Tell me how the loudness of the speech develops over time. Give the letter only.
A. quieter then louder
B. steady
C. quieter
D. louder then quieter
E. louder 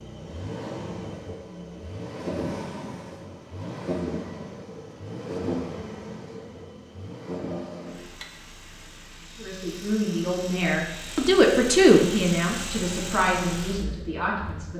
D.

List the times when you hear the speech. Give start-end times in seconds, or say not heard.
9.3-14.7.